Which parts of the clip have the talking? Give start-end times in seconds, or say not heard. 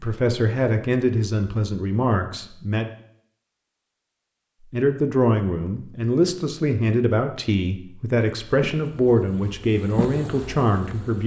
0.0-2.9, 4.7-11.2.